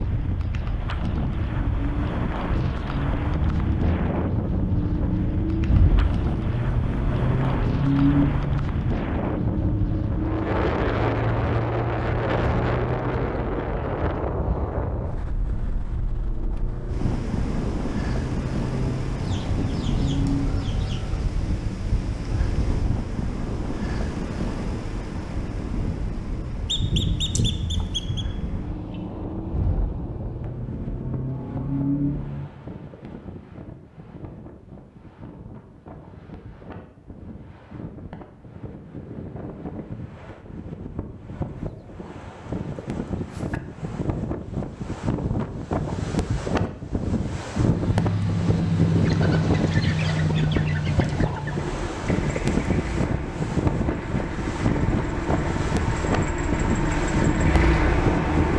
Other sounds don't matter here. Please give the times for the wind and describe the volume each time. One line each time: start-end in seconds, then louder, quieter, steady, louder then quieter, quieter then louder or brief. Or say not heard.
0.0-58.5 quieter then louder.